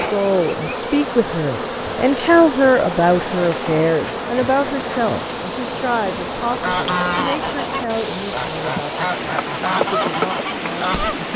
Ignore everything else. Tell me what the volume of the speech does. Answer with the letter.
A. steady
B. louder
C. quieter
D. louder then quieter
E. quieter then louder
C.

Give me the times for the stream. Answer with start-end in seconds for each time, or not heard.
0.0-11.3.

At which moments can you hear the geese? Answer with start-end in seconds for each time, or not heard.
6.5-11.3.